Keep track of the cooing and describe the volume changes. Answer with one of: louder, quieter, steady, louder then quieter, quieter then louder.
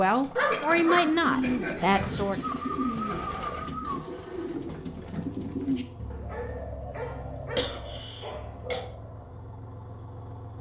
quieter.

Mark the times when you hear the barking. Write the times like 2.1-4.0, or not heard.
0.3-2.2, 6.1-8.9.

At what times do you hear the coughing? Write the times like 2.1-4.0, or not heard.
0.5-2.1, 7.5-8.8.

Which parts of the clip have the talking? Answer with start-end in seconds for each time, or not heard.
0.0-2.5.